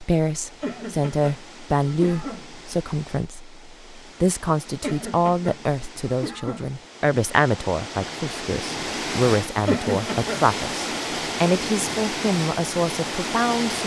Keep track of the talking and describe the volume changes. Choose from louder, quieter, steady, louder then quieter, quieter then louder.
steady.